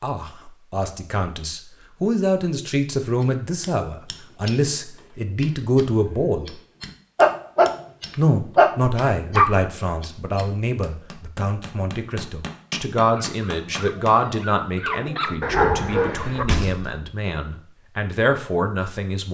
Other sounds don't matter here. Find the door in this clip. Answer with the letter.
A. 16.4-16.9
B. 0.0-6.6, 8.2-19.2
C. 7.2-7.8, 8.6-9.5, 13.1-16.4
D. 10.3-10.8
A.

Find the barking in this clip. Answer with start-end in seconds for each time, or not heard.
7.2-7.8, 8.6-9.5, 13.1-16.4.